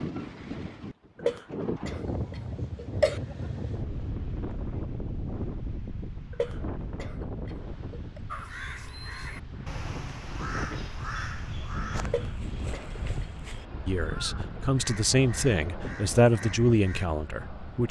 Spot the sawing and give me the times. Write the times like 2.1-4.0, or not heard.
not heard.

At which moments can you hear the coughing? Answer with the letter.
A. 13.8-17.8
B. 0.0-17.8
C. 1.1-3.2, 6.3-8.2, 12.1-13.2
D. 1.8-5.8
C.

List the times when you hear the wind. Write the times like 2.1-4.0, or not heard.
0.0-17.8.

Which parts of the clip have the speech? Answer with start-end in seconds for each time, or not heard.
13.8-17.8.